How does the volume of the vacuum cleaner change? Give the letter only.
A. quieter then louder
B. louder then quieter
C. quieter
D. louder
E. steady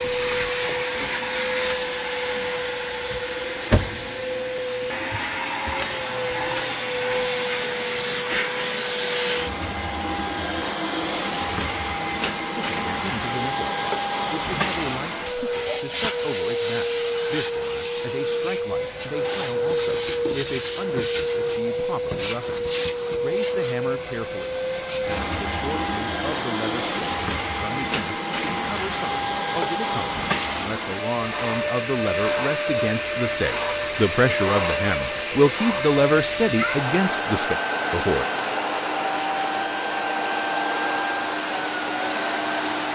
E.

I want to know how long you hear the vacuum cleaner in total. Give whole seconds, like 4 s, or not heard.
43 s.